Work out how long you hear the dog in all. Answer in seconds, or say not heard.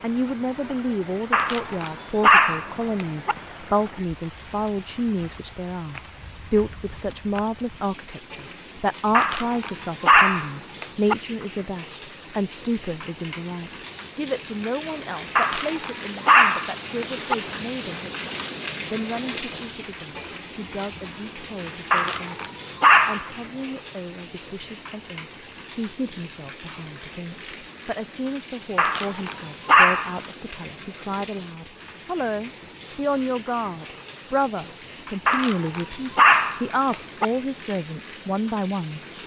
11 s.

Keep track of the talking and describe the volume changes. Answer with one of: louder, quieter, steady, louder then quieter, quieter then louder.
quieter then louder.